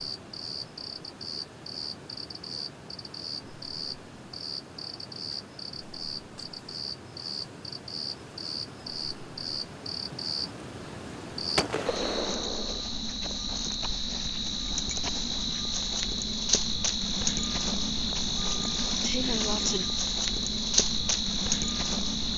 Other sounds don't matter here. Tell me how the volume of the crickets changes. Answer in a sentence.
The loudness of the crickets goes up.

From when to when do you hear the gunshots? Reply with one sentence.
The gunshots can be heard from 11.6 to 12.8 s.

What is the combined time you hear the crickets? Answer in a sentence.
The crickets can be heard for 22 seconds in total.